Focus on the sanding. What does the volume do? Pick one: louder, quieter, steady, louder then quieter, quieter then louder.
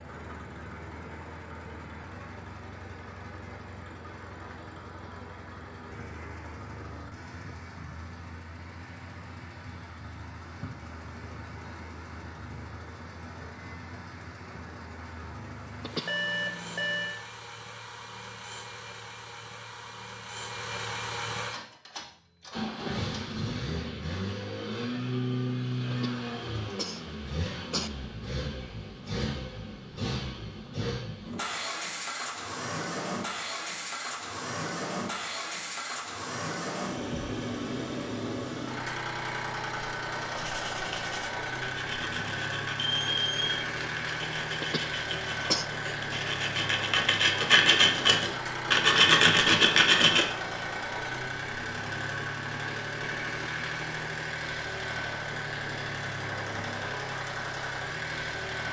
louder.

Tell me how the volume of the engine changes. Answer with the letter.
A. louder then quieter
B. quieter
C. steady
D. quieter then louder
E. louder
E.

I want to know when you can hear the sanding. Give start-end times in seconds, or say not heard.
40.4-50.3.